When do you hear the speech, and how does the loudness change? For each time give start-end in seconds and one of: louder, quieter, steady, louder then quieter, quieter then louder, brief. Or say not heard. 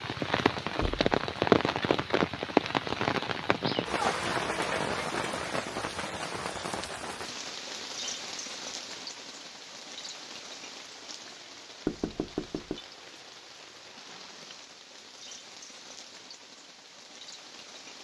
not heard.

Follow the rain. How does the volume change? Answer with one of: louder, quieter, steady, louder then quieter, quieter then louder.
quieter.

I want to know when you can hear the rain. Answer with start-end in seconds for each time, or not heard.
0.0-17.9.